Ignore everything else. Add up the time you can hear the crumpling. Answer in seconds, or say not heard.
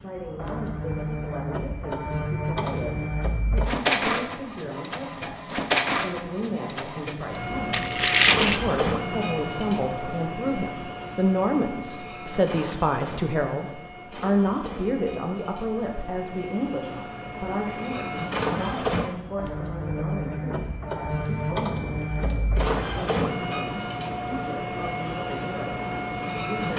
2 s.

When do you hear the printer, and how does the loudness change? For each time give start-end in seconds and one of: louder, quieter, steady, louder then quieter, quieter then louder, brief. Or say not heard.
0.0-26.7 quieter then louder.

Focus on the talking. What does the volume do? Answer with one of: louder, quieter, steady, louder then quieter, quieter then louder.
louder then quieter.